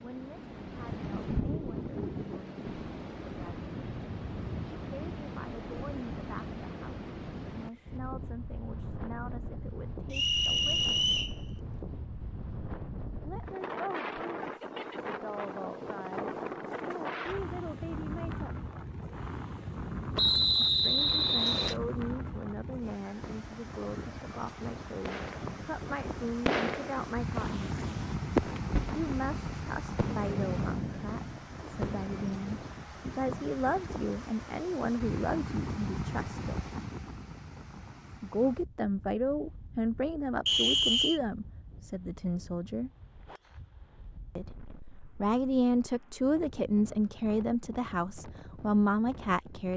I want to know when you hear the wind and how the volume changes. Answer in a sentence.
You can hear the wind from 0.0 to 49.7 s, getting quieter.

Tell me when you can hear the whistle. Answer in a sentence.
You can hear the whistle from 10.1 to 11.3 s, from 20.1 to 21.8 s and from 40.5 to 41.2 s.